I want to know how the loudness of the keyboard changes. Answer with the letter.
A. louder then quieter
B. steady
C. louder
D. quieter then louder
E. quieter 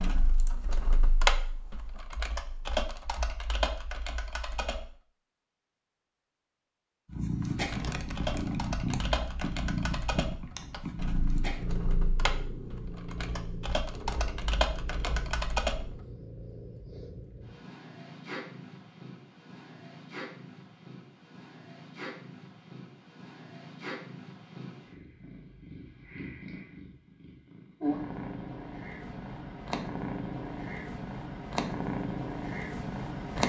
D.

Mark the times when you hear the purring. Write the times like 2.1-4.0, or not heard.
7.0-33.4.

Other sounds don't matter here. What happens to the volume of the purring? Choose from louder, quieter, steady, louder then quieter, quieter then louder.
quieter then louder.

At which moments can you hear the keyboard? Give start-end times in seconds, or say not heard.
0.0-5.0, 7.5-16.0.